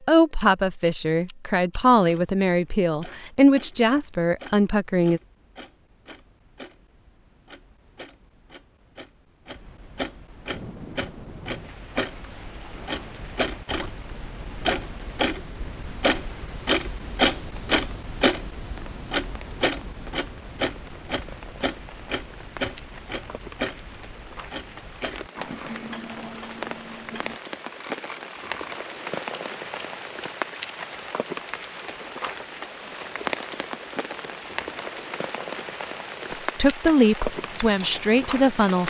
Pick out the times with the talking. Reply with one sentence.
The talking can be heard from 0.1 to 5.2 s and from 36.4 to 38.8 s.